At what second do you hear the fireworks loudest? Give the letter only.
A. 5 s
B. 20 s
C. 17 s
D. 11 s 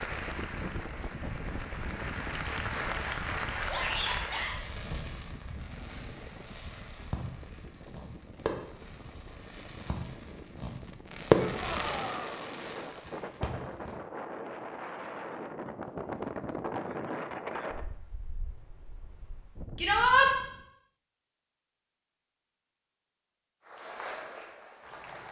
D.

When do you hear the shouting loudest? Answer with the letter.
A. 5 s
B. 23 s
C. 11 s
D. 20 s
D.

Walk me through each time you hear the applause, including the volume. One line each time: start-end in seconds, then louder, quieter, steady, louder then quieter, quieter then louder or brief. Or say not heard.
0.0-4.5 louder
23.6-25.2 brief.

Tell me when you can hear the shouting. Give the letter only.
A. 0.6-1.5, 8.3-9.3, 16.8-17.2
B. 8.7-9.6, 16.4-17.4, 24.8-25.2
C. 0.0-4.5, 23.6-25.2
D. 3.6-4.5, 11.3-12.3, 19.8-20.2
D.